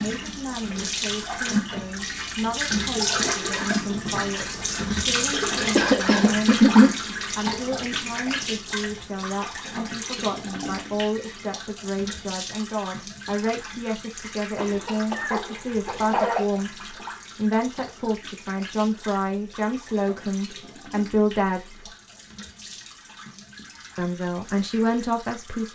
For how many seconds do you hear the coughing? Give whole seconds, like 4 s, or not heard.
3 s.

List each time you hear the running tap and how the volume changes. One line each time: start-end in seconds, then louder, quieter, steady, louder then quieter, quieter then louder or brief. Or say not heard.
0.0-25.7 quieter.